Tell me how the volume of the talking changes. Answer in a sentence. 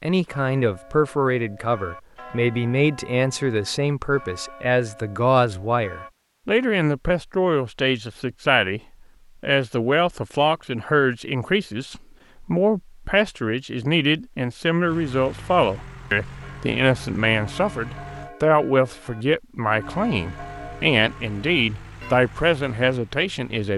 The loudness of the talking stays about the same.